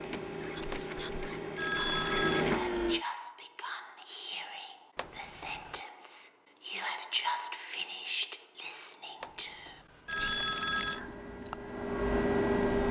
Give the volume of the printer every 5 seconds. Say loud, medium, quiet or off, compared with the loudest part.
loud, off, loud.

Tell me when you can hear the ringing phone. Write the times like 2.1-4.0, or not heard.
0.7-2.5, 5.0-5.8, 9.2-11.0.